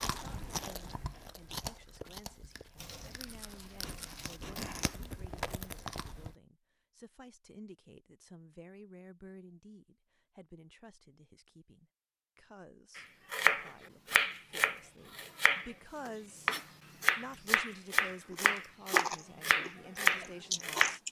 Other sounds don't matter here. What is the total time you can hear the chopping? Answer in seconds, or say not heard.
8 s.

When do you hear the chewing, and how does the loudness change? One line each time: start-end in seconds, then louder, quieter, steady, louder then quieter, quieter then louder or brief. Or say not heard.
0.0-6.3 quieter then louder
18.3-21.0 brief.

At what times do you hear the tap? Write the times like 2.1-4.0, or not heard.
2.8-4.4.